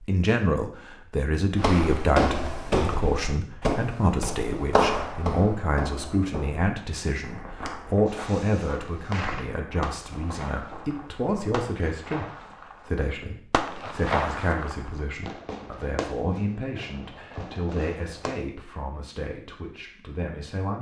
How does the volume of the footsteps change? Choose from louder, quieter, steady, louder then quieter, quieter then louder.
quieter.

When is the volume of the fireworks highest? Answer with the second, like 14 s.
14 s.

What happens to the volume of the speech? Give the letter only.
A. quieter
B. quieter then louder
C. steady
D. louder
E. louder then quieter
A.